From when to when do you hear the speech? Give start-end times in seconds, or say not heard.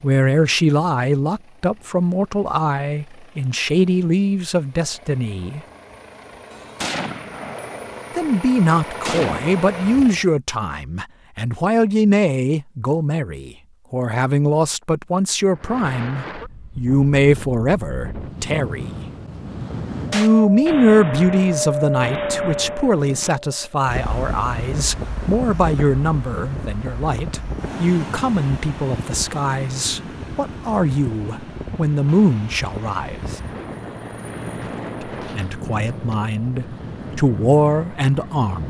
0.0-5.6, 8.2-18.9, 20.1-33.4, 35.0-38.6.